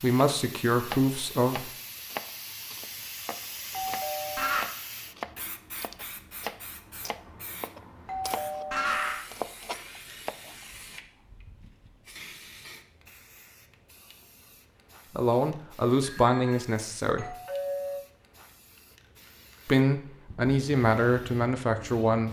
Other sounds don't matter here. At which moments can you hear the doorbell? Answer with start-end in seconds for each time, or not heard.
3.7-4.7, 8.1-9.2, 16.0-18.0.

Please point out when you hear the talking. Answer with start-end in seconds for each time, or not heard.
0.0-1.7, 15.2-17.4, 19.6-22.2.